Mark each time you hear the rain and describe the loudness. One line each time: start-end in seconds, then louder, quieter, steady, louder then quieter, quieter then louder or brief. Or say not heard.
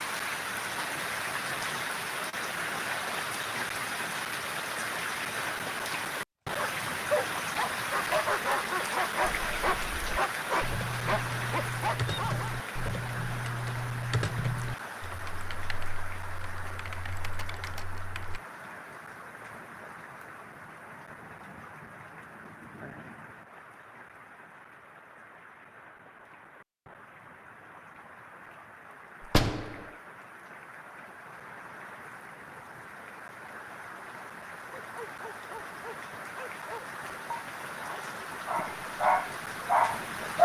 0.0-40.4 quieter then louder.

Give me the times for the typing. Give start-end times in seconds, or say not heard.
9.2-18.4.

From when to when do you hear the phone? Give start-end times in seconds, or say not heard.
not heard.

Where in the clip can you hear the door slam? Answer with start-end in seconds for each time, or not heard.
29.2-29.9.